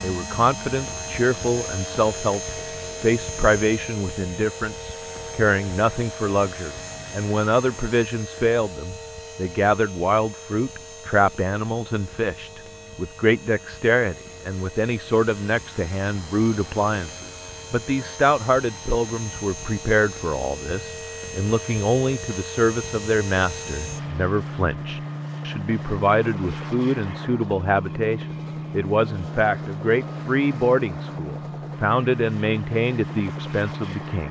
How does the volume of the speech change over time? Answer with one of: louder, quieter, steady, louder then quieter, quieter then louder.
steady.